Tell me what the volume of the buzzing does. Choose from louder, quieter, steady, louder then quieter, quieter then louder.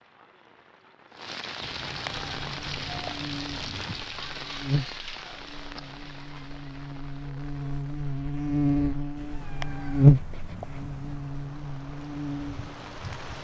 louder then quieter.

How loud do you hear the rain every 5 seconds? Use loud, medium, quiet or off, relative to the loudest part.
loud, medium, medium.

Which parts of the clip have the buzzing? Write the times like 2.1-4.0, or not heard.
2.1-13.4.